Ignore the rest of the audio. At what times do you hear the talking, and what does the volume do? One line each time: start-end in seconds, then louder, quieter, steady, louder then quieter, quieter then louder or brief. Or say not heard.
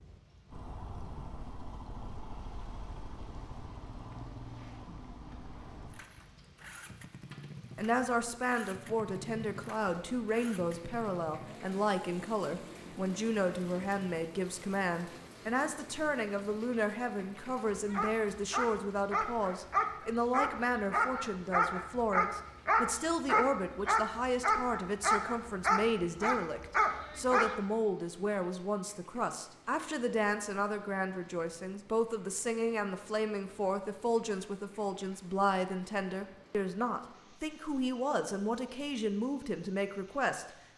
7.8-40.5 steady.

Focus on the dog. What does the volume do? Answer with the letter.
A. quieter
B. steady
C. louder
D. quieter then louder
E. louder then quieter
B.